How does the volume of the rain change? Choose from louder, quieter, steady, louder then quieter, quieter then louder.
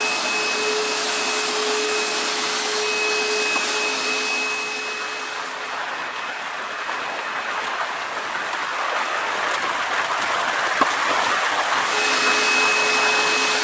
louder.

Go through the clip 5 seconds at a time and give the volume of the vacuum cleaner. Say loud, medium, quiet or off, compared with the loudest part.
loud, quiet, loud.